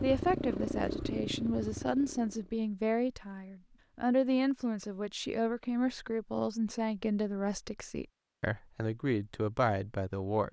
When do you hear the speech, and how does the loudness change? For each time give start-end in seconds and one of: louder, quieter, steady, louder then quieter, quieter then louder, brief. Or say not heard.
0.0-10.4 steady.